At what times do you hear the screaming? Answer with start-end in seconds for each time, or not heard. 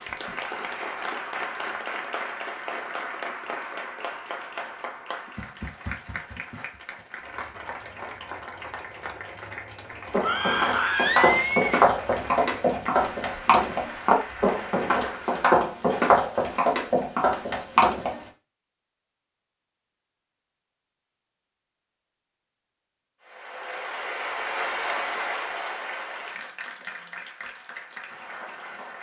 10.2-11.8.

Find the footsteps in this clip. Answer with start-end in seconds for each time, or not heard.
10.1-18.2.